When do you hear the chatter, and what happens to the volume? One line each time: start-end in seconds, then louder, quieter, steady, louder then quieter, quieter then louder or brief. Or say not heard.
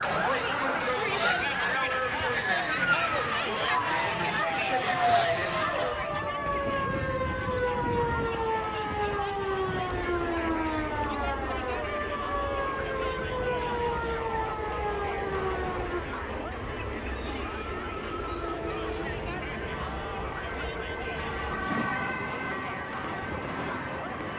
0.0-24.3 quieter.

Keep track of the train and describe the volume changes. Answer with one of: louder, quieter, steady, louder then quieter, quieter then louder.
louder.